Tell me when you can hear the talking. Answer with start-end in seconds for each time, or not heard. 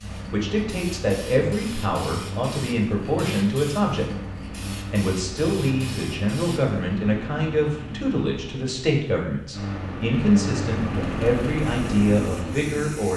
0.3-13.1.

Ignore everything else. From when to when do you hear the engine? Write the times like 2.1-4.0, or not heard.
0.0-13.1.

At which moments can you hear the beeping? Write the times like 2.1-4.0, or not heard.
not heard.